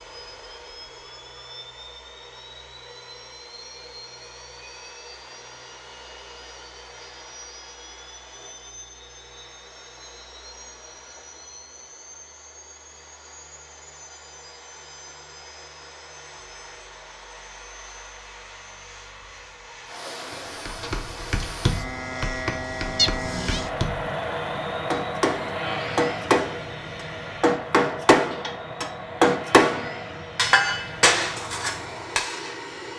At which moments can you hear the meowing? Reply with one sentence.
You can hear the meowing from 22.9 to 23.6 s.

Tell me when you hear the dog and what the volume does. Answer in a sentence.
The dog can't be heard in this clip.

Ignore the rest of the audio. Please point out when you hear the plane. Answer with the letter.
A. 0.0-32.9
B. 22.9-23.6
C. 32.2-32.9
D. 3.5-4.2
A.